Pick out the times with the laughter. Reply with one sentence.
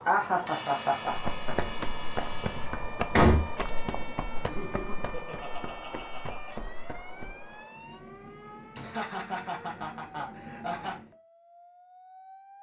The laughter can be heard from 0.1 to 1.6 s, from 4.4 to 6.6 s and from 8.8 to 10.9 s.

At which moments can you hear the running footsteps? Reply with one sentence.
The running footsteps can be heard from 1.1 to 7.5 s.